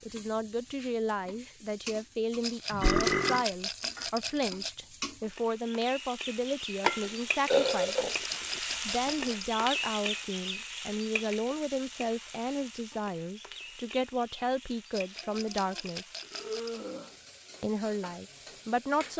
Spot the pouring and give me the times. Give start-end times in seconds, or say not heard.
not heard.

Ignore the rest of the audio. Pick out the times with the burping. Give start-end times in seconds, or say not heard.
2.7-3.5, 6.8-8.6, 15.2-17.1.